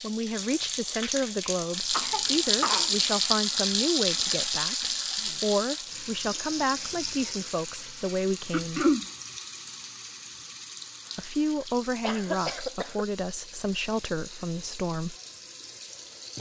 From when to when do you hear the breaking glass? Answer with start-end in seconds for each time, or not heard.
not heard.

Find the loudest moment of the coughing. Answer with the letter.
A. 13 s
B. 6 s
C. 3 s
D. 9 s
D.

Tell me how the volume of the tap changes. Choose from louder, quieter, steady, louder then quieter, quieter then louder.
quieter.